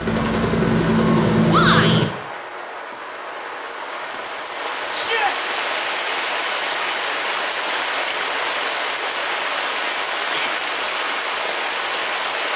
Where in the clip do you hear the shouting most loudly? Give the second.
2 s.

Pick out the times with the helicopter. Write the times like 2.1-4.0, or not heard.
0.0-2.0.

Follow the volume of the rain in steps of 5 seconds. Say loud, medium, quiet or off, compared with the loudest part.
medium, loud, loud.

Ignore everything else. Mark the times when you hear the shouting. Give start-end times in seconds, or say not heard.
1.4-2.0, 4.9-5.3, 10.2-10.6.